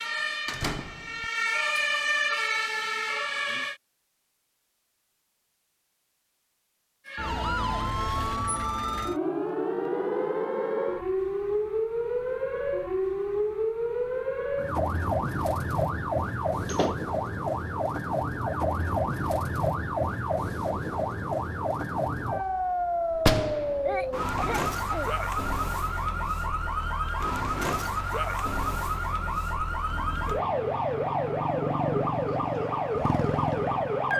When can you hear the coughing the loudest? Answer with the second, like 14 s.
24 s.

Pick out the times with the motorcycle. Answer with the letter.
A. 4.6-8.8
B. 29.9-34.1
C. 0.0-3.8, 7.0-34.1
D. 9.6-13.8
B.